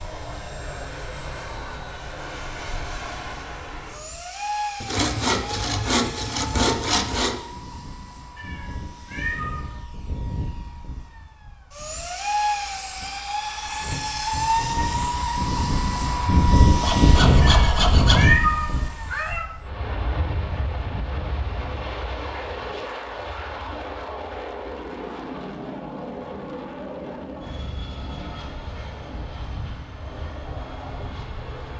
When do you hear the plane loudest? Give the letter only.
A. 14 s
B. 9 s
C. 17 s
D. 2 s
C.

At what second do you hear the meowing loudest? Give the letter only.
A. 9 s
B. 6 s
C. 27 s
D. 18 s
D.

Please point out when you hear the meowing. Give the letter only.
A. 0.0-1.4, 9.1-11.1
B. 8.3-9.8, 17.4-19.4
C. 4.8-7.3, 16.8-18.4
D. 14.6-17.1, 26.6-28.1
B.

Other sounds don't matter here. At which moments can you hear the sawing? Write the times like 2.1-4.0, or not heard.
4.8-7.3, 16.8-18.4.